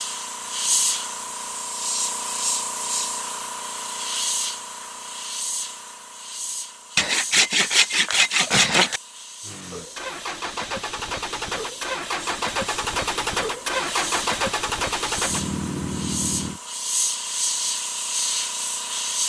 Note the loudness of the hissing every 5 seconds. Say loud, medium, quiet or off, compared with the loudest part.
loud, medium, medium, loud.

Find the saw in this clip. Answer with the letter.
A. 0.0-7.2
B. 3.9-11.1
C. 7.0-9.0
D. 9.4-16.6
C.